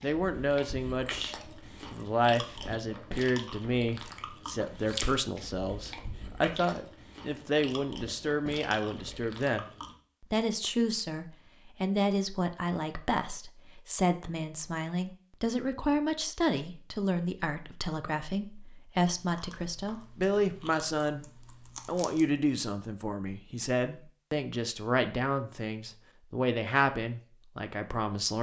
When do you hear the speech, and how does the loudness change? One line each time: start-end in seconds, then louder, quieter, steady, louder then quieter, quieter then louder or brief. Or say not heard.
0.0-21.2 steady
21.9-28.3 steady.